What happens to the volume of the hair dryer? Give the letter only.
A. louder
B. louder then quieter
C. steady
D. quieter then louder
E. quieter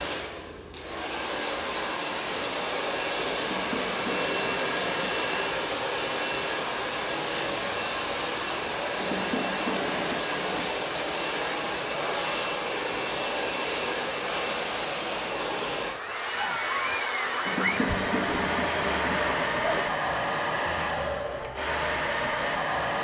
C.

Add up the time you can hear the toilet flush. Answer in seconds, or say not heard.
6 s.